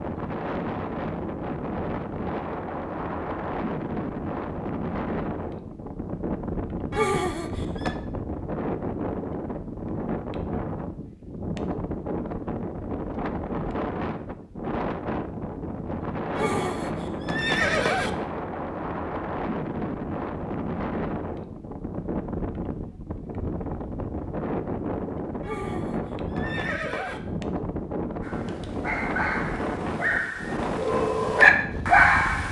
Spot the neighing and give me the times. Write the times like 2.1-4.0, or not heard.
6.9-8.0, 16.4-18.1, 25.4-27.2.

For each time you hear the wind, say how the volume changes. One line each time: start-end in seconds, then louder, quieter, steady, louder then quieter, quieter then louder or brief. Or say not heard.
0.0-32.4 steady.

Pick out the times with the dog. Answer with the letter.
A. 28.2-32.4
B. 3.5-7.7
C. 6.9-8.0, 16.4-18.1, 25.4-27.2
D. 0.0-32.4
A.